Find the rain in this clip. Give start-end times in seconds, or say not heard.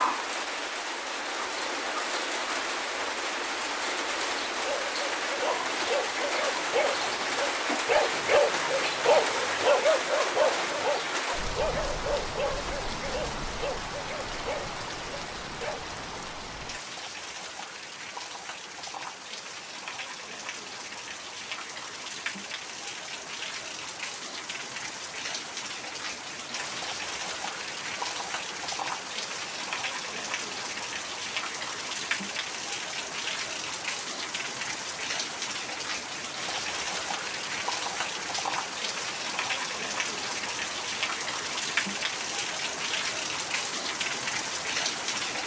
0.0-45.4.